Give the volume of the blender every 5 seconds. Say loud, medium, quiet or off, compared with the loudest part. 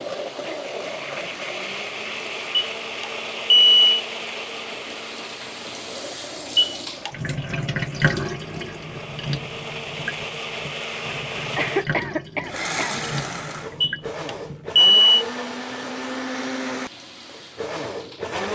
loud, medium, loud, loud.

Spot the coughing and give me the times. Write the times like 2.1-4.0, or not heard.
11.6-13.1.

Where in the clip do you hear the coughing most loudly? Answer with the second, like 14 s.
12 s.